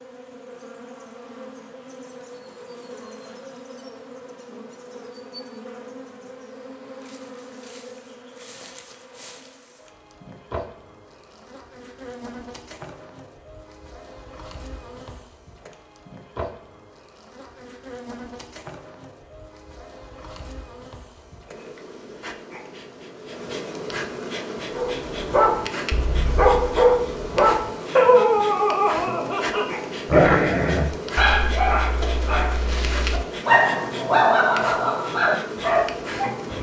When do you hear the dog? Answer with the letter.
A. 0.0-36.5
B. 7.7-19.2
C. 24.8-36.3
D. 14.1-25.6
C.